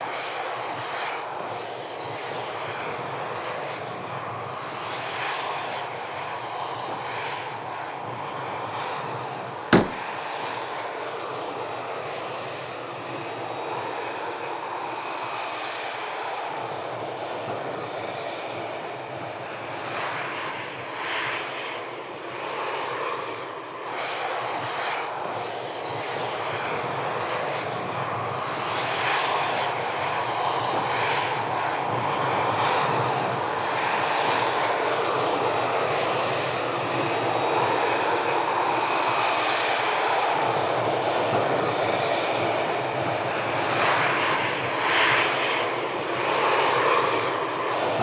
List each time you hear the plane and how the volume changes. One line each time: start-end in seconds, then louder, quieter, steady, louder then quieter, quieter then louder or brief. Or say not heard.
0.0-47.9 louder.